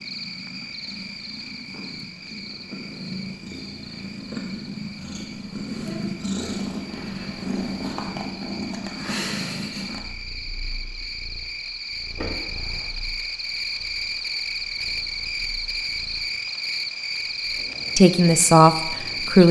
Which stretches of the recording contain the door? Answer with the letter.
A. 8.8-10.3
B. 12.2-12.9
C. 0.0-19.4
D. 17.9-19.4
B.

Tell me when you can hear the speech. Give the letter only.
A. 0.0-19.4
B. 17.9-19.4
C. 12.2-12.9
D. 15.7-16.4
B.